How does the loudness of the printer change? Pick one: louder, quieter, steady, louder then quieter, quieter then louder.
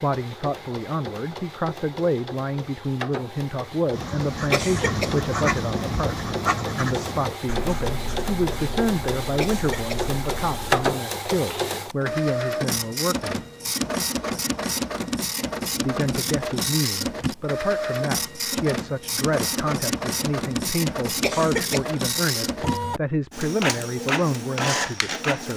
louder.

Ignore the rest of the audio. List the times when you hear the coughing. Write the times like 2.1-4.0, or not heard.
4.5-5.2, 9.4-10.2, 21.2-21.9.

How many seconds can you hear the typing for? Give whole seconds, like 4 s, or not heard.
not heard.